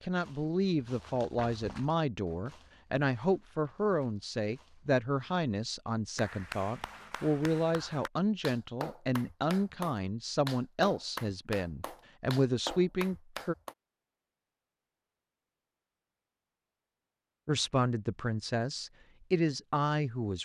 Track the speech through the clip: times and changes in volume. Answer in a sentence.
The speech can be heard from 0.0 to 13.6 s, at a steady volume; and briefly from 17.4 to 20.4 s.